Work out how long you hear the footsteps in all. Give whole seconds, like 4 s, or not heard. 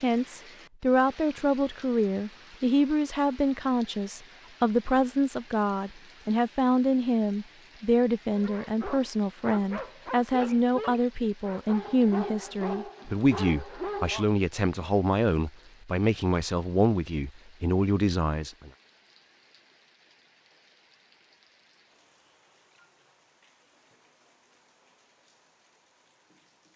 not heard.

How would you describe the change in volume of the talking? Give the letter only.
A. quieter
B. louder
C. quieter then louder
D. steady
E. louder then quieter
D.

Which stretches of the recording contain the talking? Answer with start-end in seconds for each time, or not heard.
0.0-18.7.